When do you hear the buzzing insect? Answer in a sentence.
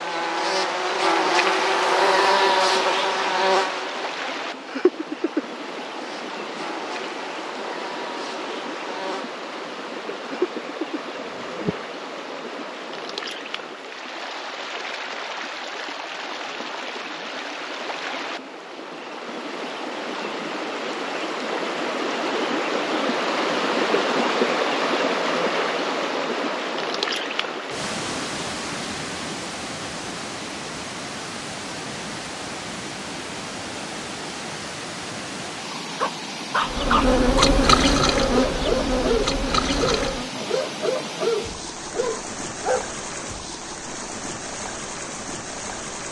You can hear the buzzing insect from 0.0 to 11.8 s and from 36.6 to 40.3 s.